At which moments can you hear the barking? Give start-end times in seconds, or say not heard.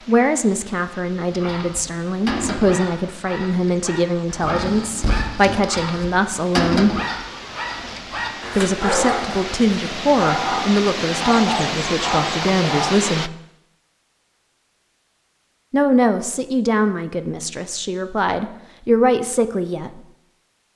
1.3-12.9.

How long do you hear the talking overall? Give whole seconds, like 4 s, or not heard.
16 s.